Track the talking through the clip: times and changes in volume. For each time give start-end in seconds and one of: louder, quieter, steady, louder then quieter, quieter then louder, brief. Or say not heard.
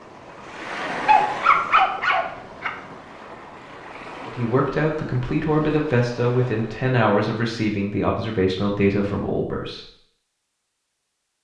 4.2-9.8 steady.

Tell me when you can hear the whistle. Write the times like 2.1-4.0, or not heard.
not heard.